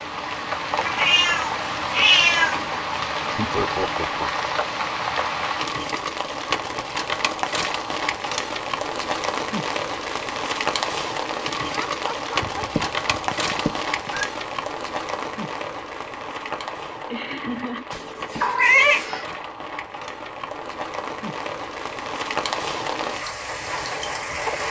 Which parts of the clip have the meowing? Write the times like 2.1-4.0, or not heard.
0.8-2.6, 12.4-14.3, 17.9-19.2.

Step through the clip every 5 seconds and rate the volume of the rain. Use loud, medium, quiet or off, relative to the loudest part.
loud, loud, loud, medium, loud.